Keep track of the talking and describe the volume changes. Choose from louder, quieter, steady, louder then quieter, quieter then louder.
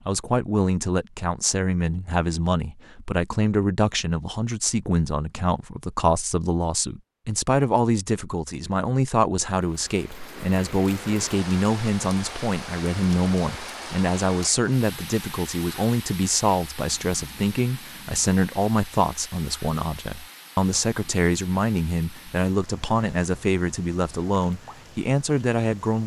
steady.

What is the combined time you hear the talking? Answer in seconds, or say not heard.
26 s.